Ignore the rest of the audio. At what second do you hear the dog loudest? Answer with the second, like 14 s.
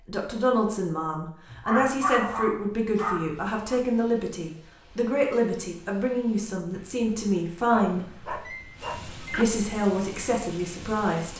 2 s.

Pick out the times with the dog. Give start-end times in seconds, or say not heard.
1.5-3.8, 7.7-9.4.